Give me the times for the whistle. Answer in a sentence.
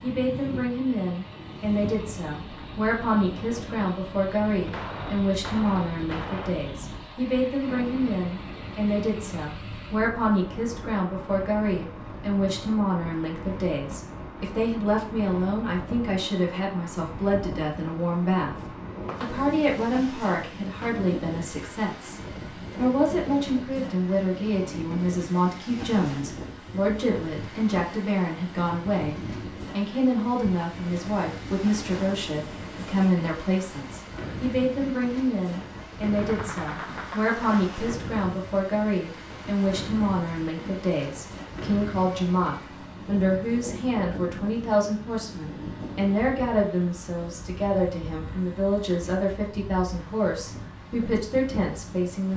The whistle can't be heard in this clip.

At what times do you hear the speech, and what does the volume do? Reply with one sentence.
You can hear the speech from 0.0 to 52.3 s, at a steady volume.